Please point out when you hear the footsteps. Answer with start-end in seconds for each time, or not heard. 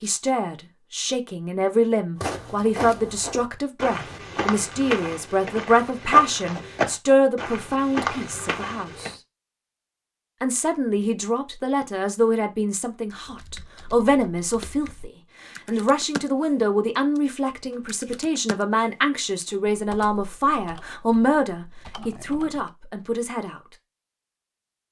2.1-9.2.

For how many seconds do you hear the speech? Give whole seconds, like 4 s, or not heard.
22 s.